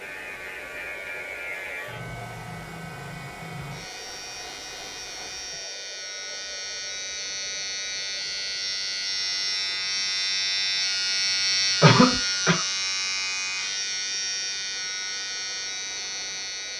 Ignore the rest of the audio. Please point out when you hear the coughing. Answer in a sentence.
You can hear the coughing from 11.8 to 12.6 s.